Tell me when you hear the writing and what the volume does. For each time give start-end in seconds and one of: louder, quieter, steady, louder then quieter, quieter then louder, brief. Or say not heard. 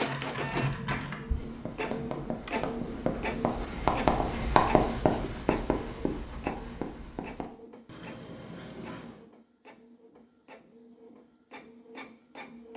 1.4-9.2 louder then quieter.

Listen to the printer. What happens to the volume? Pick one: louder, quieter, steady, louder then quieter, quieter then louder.
quieter.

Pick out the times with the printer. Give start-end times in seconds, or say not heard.
0.0-12.7.